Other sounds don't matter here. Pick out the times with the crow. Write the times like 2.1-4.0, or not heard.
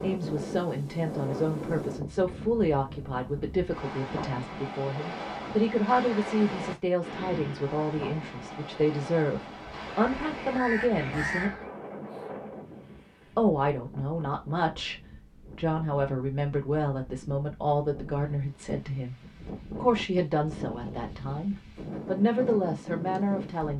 9.8-11.7.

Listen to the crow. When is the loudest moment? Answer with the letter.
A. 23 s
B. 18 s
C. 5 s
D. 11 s
D.